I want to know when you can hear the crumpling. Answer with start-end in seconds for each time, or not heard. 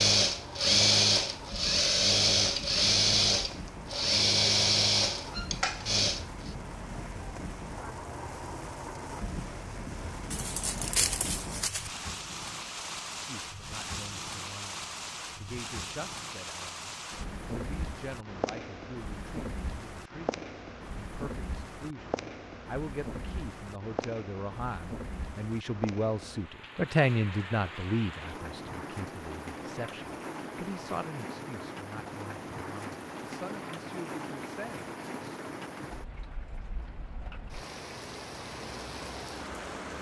10.3-11.9.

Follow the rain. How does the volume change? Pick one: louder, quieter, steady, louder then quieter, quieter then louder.
steady.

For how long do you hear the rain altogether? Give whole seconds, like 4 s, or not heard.
40 s.